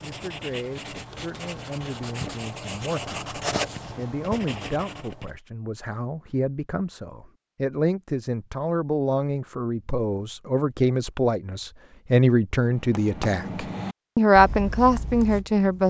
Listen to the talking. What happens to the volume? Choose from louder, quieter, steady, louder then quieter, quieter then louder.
louder.